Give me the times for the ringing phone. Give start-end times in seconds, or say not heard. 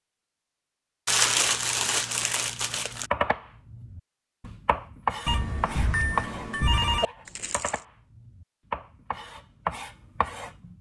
5.2-7.0.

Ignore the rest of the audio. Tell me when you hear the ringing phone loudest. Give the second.
7 s.